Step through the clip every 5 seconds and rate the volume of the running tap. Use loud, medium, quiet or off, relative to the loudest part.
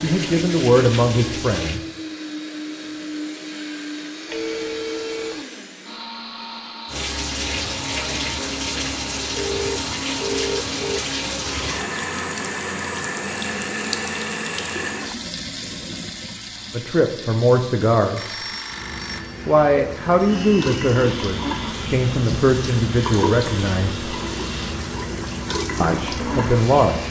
loud, loud, loud, medium, loud, loud.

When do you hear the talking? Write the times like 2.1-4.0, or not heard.
0.0-1.9, 16.7-18.4, 19.4-24.1, 25.8-27.0.